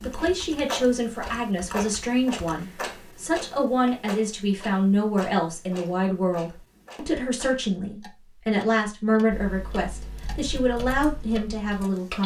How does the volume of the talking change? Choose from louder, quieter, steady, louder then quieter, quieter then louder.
steady.